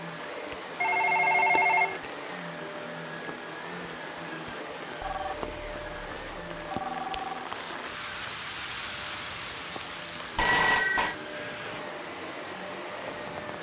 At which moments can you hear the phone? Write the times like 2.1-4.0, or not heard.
0.8-2.0, 5.0-7.5, 10.3-11.2.